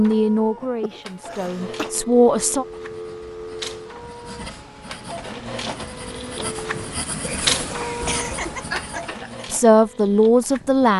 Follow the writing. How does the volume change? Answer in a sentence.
The volume of the writing goes up.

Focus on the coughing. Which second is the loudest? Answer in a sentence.
The volume of the coughing peaks at 9 seconds.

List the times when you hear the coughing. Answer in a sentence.
You can hear the coughing from 0.8 to 1.9 s and from 7.0 to 9.4 s.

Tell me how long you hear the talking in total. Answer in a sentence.
You can hear the talking for 4 seconds altogether.